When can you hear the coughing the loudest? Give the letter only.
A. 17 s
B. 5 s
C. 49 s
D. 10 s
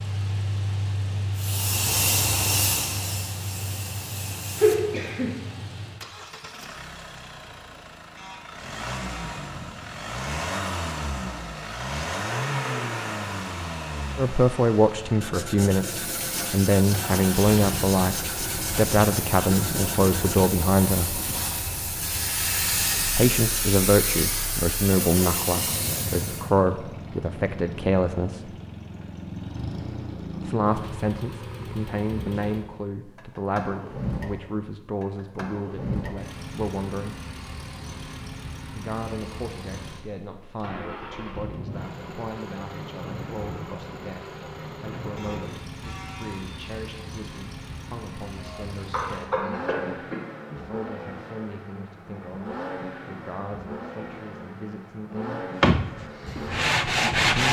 B.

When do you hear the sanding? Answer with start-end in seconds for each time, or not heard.
15.2-20.6, 55.6-57.4.